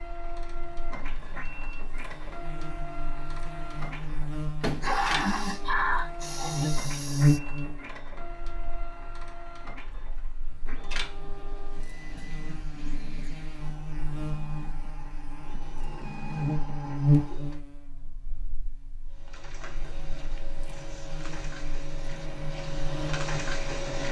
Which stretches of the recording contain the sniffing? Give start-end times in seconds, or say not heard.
4.6-7.4.